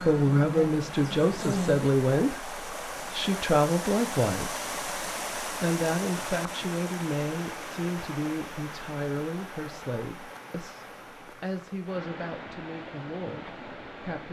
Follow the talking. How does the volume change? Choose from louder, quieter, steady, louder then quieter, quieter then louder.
quieter.